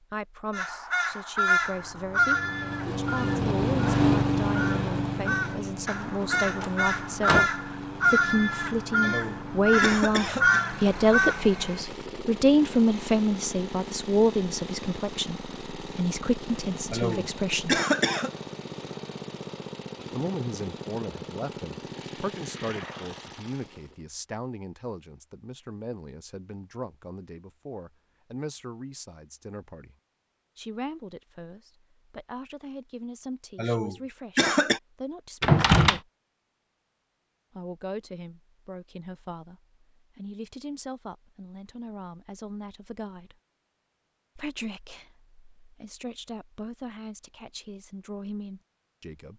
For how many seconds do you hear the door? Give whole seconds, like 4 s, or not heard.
2 s.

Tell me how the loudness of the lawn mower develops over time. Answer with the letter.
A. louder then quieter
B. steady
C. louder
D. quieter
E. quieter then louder
D.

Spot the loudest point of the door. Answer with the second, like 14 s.
36 s.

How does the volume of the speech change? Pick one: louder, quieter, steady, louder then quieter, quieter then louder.
louder then quieter.